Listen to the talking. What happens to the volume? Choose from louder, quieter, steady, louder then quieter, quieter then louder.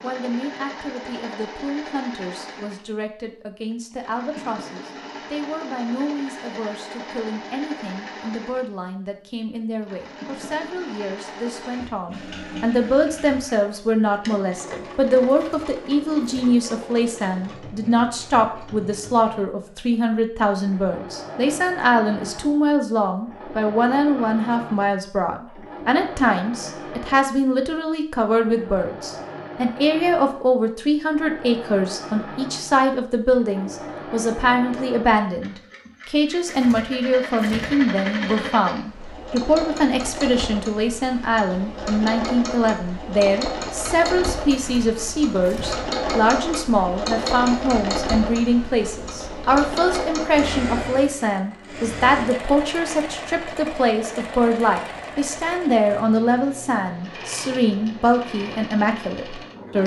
louder.